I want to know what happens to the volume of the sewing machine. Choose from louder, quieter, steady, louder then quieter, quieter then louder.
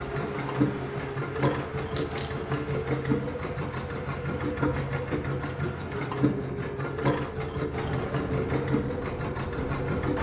steady.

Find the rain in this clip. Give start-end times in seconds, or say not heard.
0.0-10.1.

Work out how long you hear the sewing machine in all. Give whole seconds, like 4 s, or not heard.
10 s.